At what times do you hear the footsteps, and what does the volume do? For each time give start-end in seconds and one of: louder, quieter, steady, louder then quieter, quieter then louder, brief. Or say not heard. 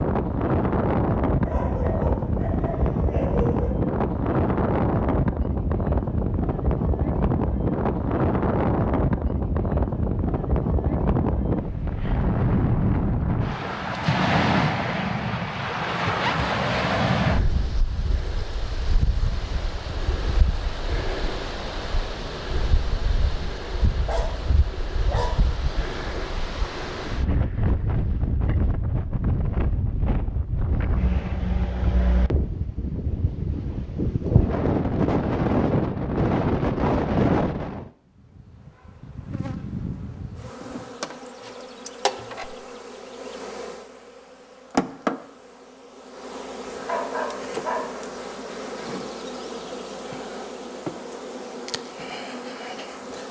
not heard.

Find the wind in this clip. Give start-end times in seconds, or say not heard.
0.0-37.9.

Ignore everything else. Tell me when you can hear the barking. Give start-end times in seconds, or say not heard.
1.4-3.8, 23.9-25.4, 46.9-48.9.